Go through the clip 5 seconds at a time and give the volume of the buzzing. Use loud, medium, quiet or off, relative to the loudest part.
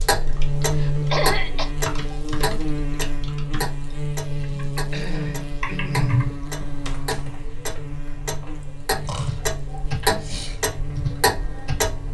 loud, medium, medium.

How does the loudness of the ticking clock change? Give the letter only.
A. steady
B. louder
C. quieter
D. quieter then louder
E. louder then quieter
D.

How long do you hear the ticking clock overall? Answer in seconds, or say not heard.
12 s.